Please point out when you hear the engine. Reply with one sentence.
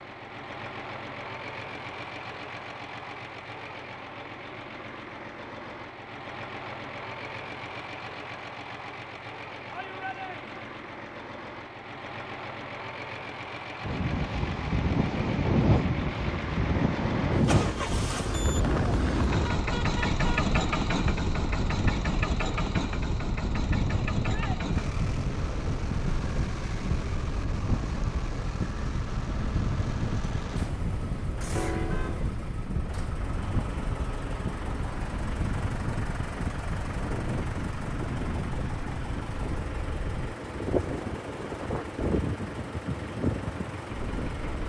The engine can be heard from 0.0 to 44.6 s.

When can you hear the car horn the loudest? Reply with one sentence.
The volume of the car horn peaks at 32 seconds.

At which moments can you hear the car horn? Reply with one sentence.
You can hear the car horn from 19.4 to 20.6 s and from 31.6 to 32.3 s.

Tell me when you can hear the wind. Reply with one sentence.
You can hear the wind from 13.8 to 44.6 s.